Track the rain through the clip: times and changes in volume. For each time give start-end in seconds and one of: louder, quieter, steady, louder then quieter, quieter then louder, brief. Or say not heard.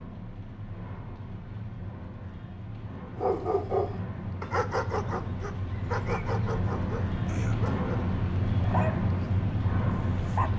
0.0-10.5 louder.